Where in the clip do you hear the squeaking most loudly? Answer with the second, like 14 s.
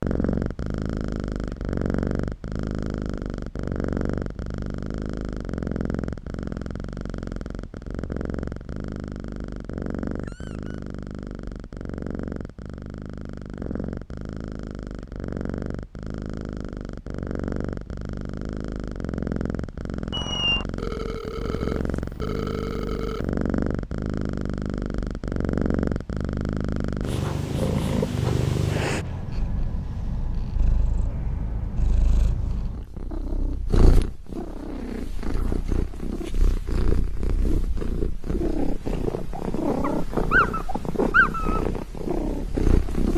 41 s.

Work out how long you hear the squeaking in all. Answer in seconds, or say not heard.
3 s.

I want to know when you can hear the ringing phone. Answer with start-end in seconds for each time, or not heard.
20.8-23.3.